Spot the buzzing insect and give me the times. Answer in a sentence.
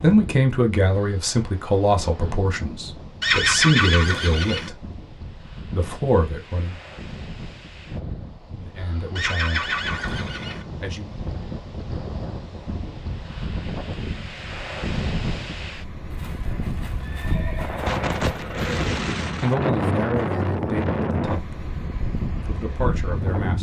The buzzing insect can't be heard in this clip.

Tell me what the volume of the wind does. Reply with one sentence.
The volume of the wind goes up.